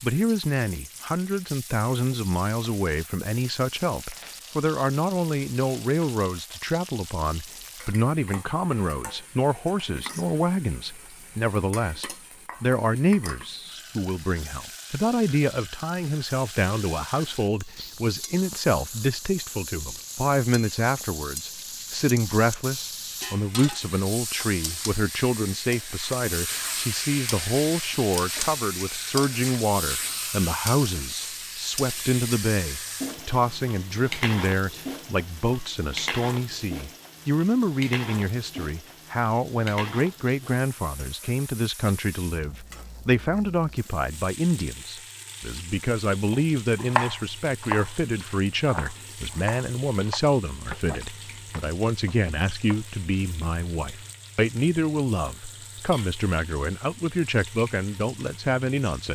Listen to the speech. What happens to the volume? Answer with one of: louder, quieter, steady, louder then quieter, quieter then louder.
steady.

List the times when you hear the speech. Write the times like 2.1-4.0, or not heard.
0.0-59.1.